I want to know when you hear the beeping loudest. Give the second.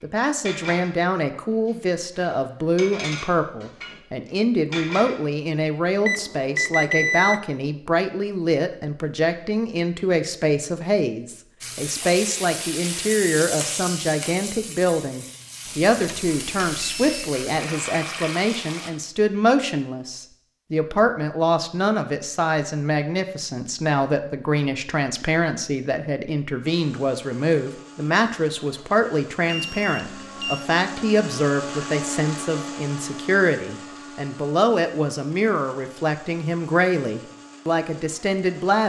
7 s.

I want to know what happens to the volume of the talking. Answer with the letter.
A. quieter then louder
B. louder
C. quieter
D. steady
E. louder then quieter
D.